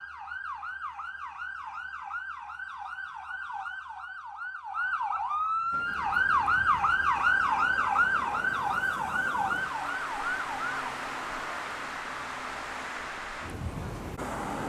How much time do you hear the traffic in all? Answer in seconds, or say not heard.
9 s.